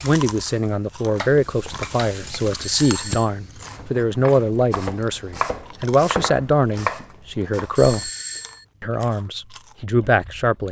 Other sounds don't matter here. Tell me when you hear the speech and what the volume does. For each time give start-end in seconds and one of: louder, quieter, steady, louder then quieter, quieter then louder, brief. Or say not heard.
0.0-8.1 steady
8.8-10.6 brief.